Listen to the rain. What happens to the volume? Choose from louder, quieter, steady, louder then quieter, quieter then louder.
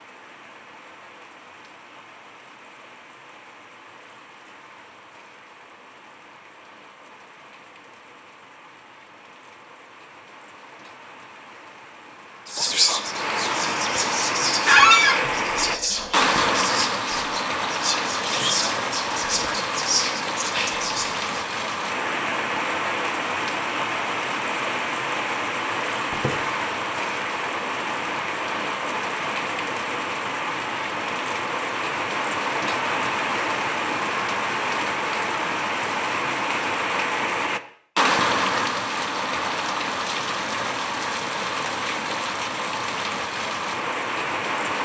louder.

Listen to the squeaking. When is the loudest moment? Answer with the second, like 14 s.
15 s.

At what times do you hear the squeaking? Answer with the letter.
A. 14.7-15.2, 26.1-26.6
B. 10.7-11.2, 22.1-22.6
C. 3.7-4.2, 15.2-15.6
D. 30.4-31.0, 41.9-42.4
A.